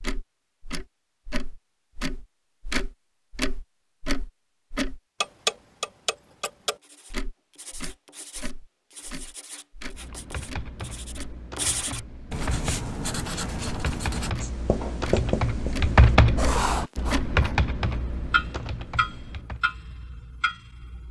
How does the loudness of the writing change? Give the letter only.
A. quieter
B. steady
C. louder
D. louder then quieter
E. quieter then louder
C.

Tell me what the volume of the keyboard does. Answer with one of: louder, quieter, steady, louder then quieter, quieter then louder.
louder then quieter.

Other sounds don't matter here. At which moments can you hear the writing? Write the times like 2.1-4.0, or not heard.
6.8-17.6.